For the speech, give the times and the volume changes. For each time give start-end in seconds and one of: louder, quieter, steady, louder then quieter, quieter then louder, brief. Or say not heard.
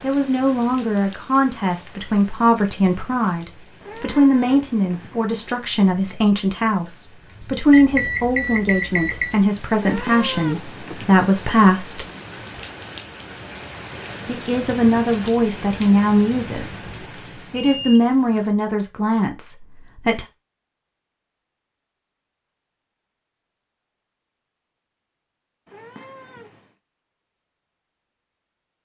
0.0-12.1 steady
14.2-16.8 brief
17.5-20.2 brief.